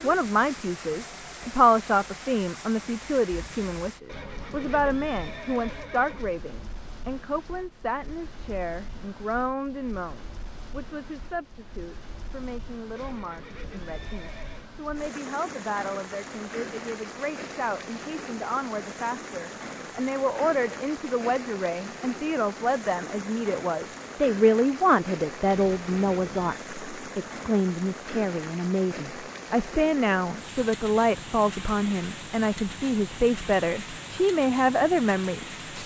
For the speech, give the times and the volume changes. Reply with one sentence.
You can hear the speech from 0.0 to 35.6 s, getting quieter then louder.